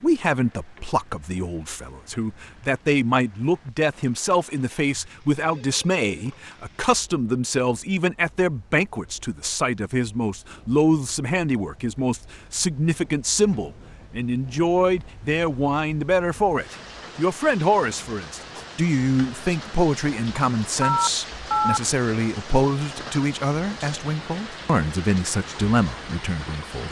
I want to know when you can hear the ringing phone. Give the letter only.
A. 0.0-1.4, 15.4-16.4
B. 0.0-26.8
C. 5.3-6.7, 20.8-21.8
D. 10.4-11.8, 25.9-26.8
C.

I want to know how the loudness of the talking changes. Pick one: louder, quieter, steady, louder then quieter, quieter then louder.
steady.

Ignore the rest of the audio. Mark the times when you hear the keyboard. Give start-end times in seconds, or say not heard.
not heard.